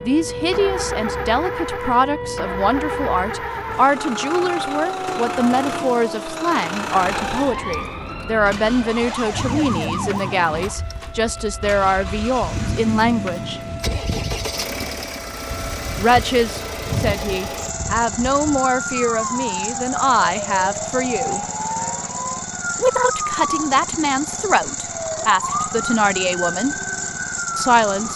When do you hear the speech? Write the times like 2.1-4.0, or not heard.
0.0-13.6, 15.9-21.4, 22.8-26.8, 27.6-28.1.